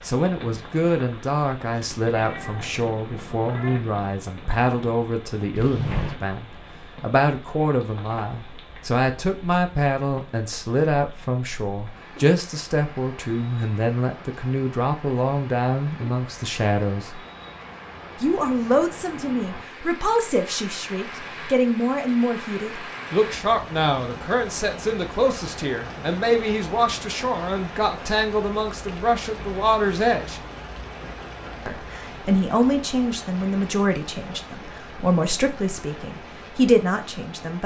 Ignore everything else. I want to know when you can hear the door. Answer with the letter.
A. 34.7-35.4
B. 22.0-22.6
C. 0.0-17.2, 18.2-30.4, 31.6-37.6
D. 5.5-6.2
D.